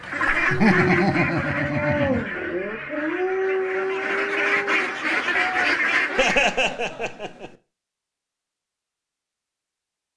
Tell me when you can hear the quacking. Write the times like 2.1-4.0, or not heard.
0.0-6.7.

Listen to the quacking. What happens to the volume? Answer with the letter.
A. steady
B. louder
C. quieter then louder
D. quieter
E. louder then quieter
C.